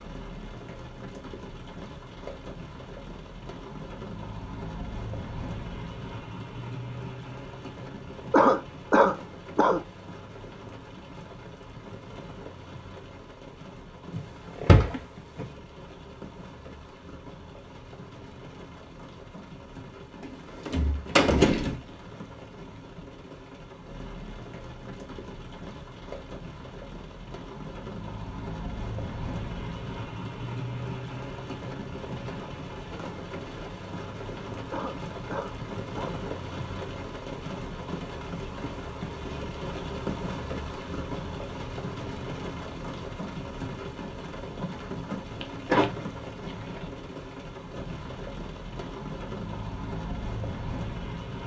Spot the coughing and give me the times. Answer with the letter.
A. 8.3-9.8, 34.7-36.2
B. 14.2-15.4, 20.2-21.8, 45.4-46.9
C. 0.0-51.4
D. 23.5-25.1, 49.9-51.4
A.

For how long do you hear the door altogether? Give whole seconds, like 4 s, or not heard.
4 s.